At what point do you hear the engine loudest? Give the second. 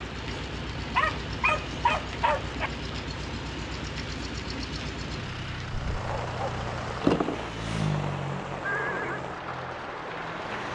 8 s.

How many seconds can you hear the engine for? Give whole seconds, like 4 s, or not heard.
11 s.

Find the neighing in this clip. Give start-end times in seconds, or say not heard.
8.7-9.2.